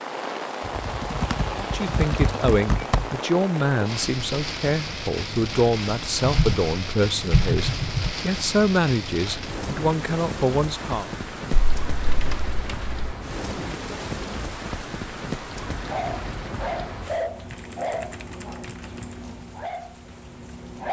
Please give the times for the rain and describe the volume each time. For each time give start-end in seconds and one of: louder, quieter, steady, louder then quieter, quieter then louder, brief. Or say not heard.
0.0-20.8 quieter.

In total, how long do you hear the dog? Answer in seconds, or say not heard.
5 s.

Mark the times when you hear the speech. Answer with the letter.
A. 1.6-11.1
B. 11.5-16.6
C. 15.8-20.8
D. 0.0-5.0
A.